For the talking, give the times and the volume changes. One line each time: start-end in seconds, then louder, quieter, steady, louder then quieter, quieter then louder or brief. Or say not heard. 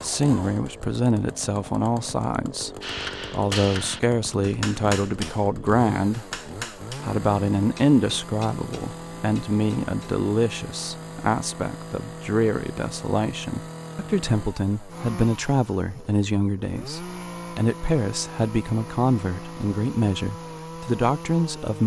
0.0-2.7 brief
3.3-6.2 brief
7.0-21.8 steady.